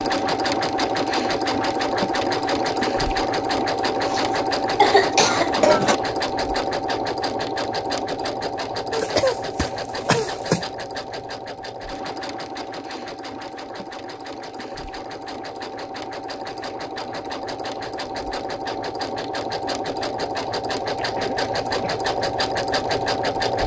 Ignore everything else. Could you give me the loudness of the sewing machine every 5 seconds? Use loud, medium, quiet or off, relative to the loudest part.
loud, loud, medium, medium, loud.